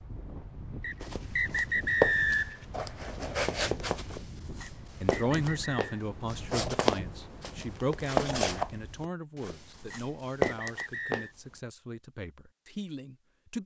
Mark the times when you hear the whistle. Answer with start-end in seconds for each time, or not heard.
0.8-2.6, 4.6-5.8, 9.9-11.3.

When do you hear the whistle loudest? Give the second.
2 s.